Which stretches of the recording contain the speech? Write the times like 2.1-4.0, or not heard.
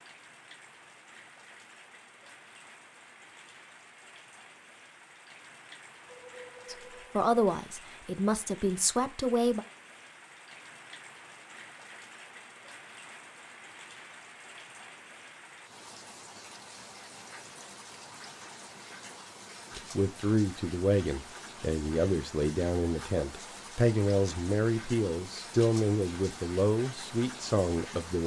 6.7-9.7, 19.8-28.2.